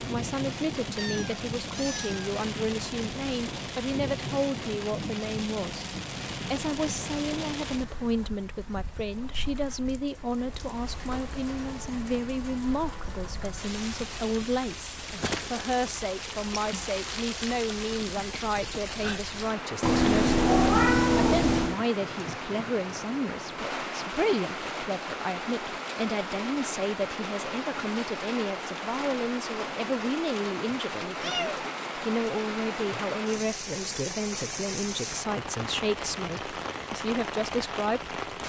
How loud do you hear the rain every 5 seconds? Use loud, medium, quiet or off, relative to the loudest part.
loud, loud, medium, loud, loud, loud, loud, loud.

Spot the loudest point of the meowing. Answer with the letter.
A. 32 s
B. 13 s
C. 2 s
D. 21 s
D.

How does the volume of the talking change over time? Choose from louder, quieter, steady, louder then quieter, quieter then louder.
steady.